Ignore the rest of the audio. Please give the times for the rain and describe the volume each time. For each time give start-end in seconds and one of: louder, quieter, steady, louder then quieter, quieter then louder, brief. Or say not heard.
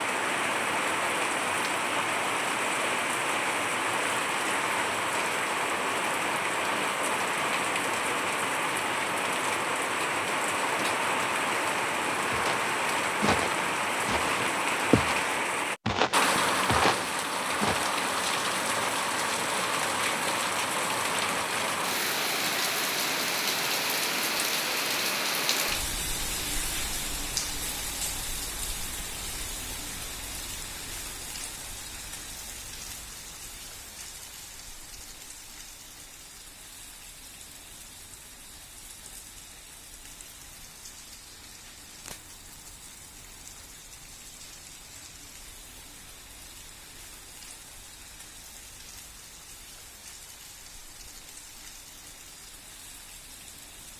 0.0-53.9 quieter.